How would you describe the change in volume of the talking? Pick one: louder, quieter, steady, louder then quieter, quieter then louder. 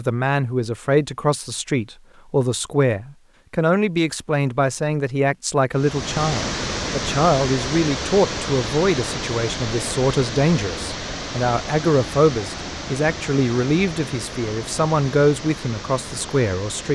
steady.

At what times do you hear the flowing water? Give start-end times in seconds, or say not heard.
5.7-16.8.